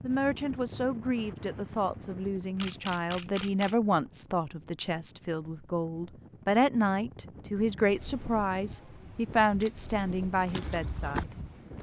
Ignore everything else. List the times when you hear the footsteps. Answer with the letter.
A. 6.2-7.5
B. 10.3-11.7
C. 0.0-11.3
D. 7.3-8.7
B.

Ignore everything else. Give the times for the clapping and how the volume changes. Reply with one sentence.
You can't hear the clapping here.